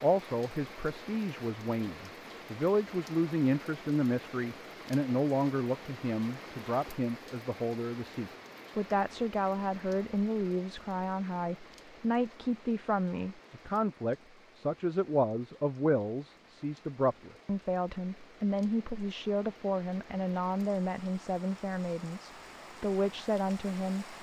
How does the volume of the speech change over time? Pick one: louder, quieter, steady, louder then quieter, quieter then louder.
steady.